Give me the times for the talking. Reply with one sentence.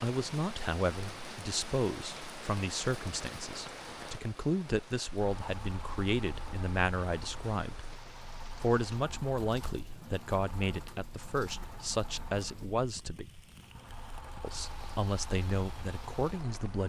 You can hear the talking from 0.0 to 7.9 s, from 8.6 to 13.3 s and from 14.4 to 16.8 s.